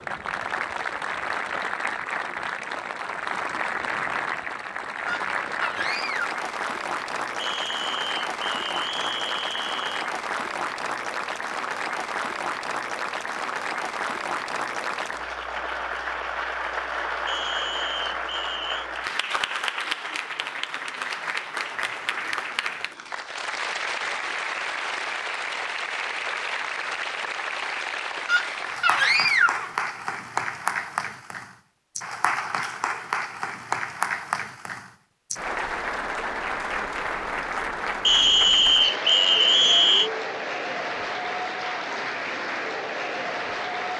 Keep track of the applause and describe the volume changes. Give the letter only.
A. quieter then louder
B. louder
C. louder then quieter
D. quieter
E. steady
E.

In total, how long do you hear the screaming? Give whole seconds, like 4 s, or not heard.
3 s.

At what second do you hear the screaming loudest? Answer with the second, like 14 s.
29 s.